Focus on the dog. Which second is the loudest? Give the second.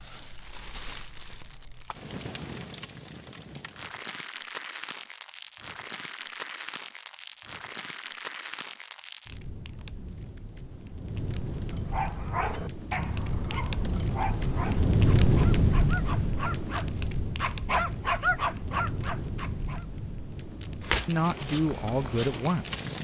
18 s.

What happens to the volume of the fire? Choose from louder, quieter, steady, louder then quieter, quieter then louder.
louder then quieter.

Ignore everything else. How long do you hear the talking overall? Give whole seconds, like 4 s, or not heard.
2 s.